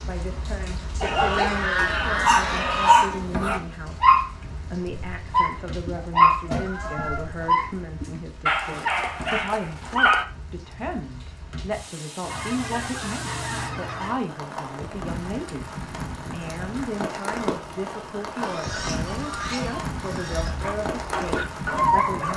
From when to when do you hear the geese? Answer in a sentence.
The geese can be heard from 1.0 to 3.1 s, from 6.0 to 7.5 s, from 12.2 to 14.2 s and from 18.4 to 20.6 s.